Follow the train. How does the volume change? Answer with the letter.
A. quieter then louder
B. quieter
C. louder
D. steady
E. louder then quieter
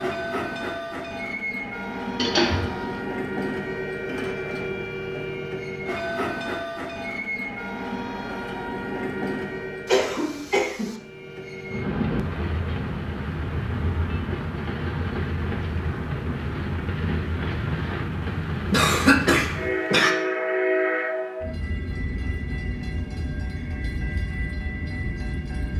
D.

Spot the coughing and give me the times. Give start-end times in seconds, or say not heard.
2.1-3.0, 9.8-10.9, 18.7-20.1.